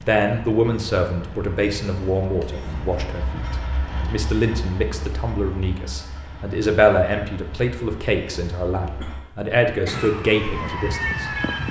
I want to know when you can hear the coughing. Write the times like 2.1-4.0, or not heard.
9.0-10.2.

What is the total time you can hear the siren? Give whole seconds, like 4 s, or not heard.
2 s.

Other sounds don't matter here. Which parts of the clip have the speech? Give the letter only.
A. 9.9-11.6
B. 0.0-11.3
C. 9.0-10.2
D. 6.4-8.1
B.